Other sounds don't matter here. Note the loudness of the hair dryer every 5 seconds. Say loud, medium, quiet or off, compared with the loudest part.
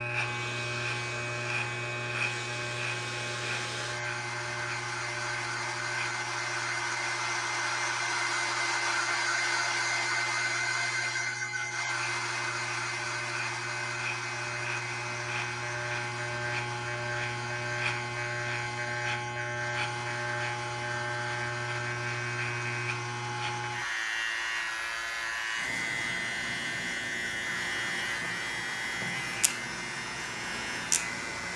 medium, loud, loud, medium, medium, medium, medium.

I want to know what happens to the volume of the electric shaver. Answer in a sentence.
The volume of the electric shaver goes down, then up.